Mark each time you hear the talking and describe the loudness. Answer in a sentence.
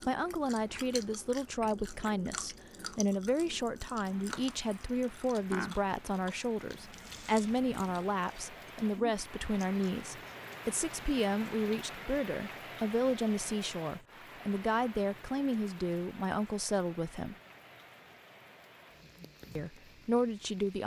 The talking can be heard from 0.1 to 17.4 s, at a steady volume; and briefly from 19.6 to 20.8 s.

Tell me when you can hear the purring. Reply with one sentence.
The purring can't be heard in this clip.